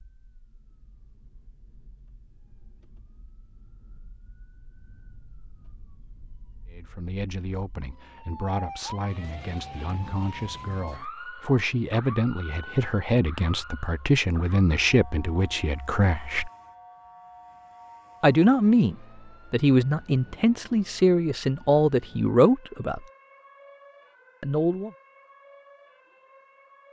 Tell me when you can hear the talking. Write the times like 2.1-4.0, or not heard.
6.7-16.5, 18.2-23.1, 24.4-24.9.